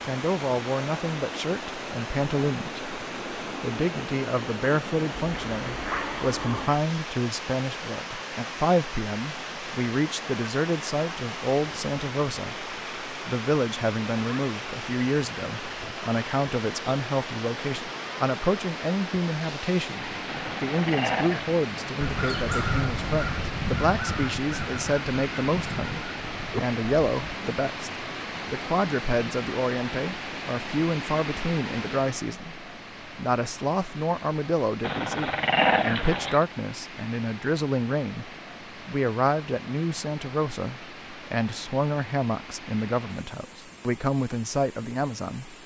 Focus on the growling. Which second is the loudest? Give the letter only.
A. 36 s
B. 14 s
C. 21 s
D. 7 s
A.